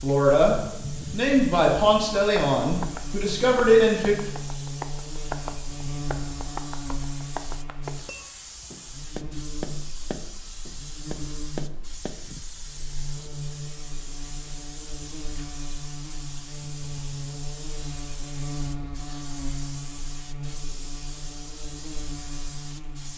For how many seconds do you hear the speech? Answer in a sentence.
You can hear the speech for 4 seconds altogether.